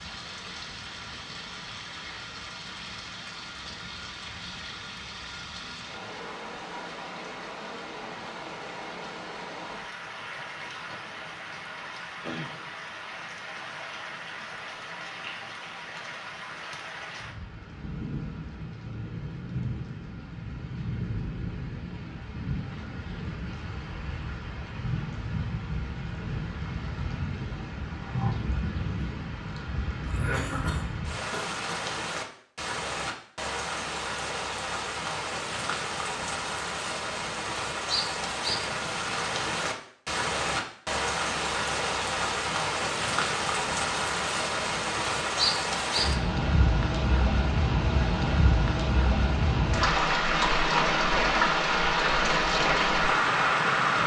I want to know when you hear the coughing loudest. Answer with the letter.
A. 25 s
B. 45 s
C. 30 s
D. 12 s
C.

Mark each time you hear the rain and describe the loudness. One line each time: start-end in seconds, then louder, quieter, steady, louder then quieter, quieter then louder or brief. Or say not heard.
0.0-54.0 louder.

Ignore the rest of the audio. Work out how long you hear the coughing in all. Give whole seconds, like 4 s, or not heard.
2 s.